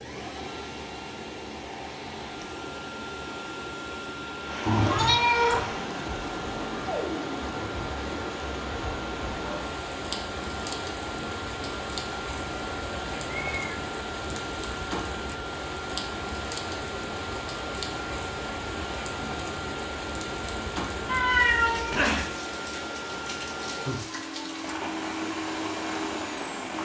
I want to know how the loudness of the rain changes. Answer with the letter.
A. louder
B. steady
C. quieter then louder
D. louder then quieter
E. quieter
B.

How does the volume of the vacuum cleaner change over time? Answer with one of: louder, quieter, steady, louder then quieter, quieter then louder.
steady.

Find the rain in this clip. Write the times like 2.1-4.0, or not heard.
4.5-26.8.